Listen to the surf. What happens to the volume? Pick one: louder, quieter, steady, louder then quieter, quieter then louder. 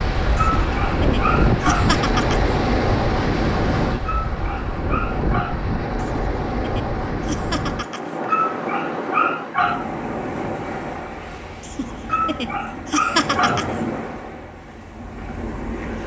quieter.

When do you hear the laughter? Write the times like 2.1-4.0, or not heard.
0.3-2.5, 6.0-8.2, 11.6-13.8.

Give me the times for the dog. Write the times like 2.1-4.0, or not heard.
0.3-1.9, 4.0-5.6, 8.2-9.8, 12.1-13.7.